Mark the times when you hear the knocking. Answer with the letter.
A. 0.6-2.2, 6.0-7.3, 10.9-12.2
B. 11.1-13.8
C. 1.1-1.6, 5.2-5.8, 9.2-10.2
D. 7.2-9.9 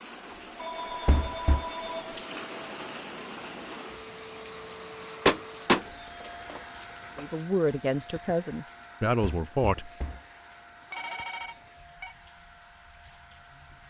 C.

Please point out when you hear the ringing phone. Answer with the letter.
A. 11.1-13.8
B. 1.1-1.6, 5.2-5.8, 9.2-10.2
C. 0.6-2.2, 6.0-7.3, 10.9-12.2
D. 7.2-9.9
C.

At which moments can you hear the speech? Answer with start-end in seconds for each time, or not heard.
7.2-9.9.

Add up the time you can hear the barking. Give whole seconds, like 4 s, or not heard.
not heard.